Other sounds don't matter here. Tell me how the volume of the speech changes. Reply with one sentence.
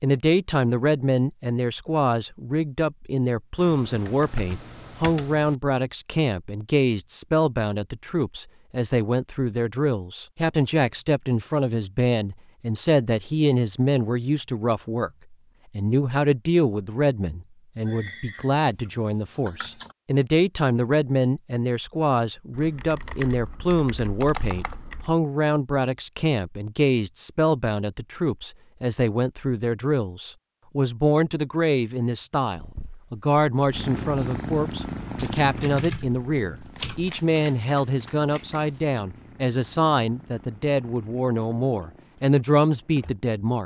The volume of the speech stays about the same.